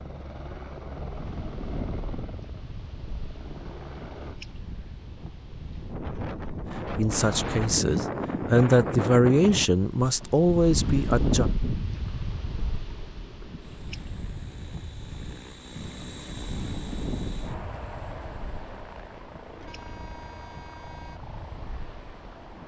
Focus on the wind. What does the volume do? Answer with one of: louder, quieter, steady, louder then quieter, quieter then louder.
louder then quieter.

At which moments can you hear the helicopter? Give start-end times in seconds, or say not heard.
0.0-4.4, 13.6-22.6.